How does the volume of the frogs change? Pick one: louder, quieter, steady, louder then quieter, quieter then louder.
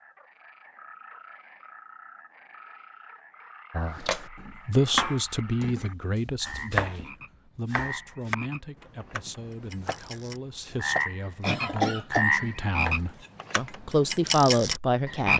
louder.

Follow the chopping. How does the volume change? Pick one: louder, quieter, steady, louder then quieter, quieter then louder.
quieter then louder.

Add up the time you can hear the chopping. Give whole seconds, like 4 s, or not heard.
9 s.